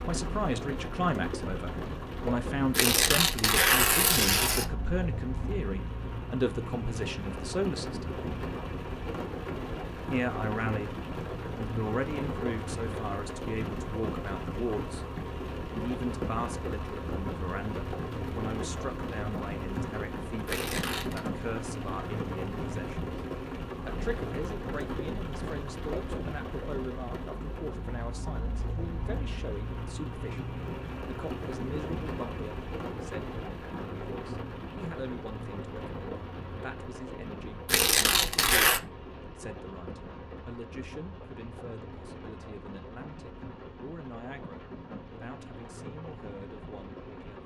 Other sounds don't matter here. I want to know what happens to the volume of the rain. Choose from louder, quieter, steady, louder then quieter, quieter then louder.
quieter.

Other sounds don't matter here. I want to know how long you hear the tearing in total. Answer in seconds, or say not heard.
4 s.